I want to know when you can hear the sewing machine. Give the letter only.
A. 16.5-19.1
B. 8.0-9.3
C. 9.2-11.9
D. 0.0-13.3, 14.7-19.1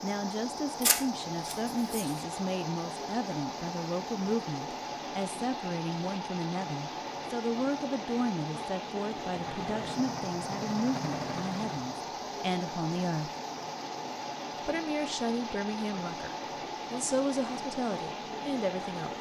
C.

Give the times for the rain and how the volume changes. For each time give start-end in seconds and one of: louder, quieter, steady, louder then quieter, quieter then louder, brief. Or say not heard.
0.0-19.1 steady.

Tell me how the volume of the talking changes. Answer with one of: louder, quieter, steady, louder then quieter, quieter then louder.
steady.